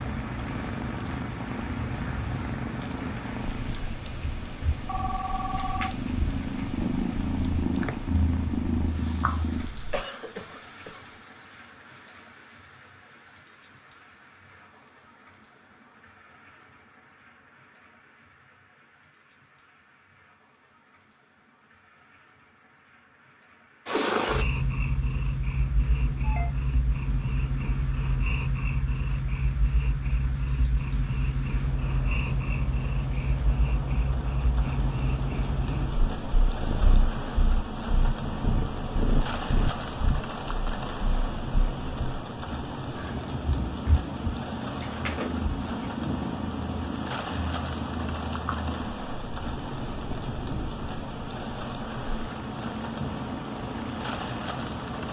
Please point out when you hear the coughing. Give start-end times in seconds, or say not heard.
9.7-11.1.